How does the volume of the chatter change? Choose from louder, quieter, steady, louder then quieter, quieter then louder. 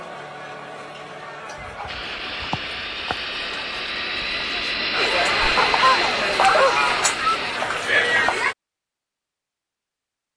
louder.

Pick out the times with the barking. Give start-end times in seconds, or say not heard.
1.6-3.1, 5.4-7.4.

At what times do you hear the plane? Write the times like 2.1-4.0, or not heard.
1.9-7.6.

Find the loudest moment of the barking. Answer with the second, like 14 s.
7 s.